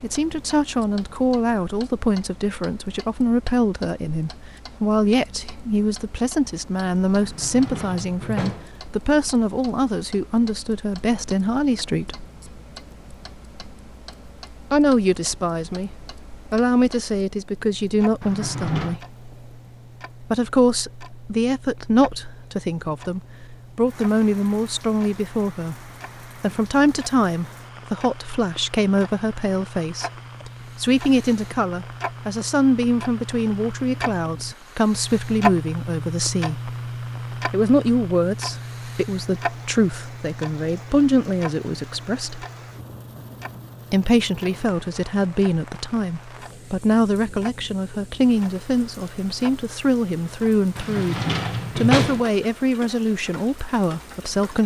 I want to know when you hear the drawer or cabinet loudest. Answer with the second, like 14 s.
52 s.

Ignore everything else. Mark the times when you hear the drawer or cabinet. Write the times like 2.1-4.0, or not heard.
7.2-8.8, 18.2-19.0, 50.8-52.3.